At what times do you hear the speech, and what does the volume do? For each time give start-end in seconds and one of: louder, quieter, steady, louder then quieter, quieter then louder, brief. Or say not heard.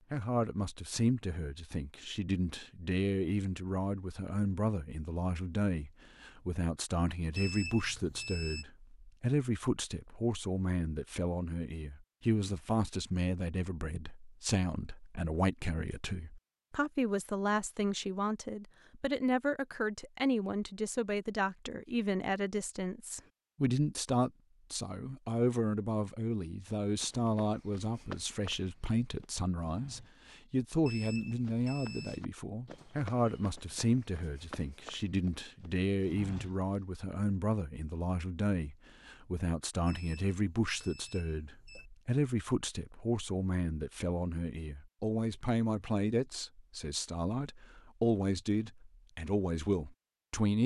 0.1-50.6 steady.